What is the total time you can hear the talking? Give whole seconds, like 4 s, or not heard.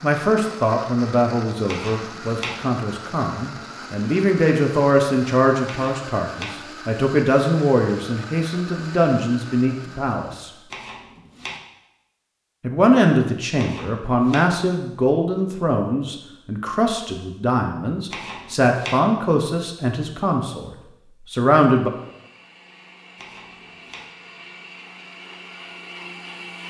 19 s.